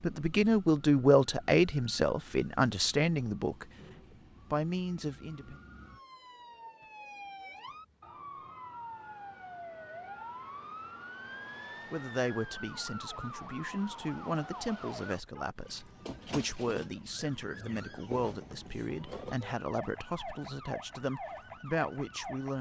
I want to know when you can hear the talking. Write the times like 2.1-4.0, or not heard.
0.0-3.7, 4.5-5.6, 11.9-22.5.